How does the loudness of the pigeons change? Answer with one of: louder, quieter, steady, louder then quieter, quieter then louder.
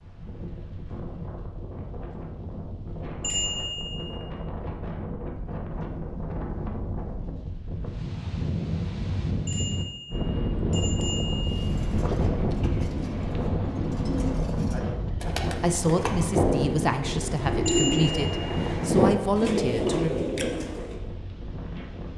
louder.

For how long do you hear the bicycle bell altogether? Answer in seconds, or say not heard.
4 s.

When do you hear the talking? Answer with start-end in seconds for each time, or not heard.
15.6-20.2.